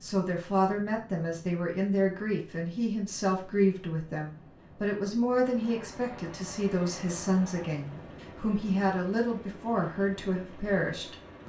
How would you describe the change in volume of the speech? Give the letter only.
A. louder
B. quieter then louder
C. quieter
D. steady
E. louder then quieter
D.